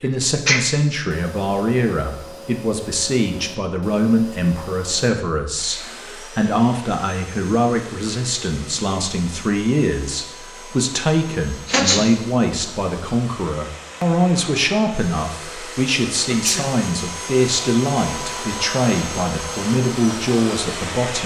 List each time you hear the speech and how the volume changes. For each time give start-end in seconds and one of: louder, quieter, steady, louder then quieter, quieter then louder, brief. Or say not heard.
0.0-21.2 steady.